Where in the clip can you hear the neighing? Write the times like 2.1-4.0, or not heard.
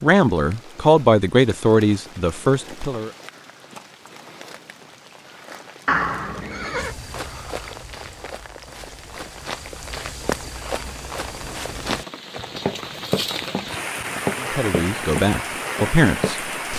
5.8-7.0.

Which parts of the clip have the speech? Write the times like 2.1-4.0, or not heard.
0.0-3.1, 14.4-16.5.